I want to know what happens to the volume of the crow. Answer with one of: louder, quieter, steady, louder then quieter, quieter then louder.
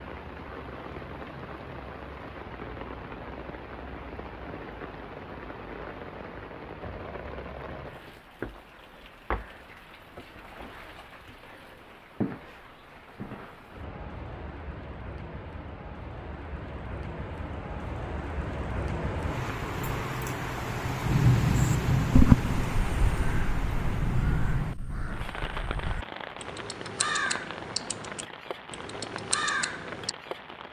quieter then louder.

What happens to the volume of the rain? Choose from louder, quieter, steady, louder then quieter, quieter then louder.
louder then quieter.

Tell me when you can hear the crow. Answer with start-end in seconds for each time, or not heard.
21.6-30.1.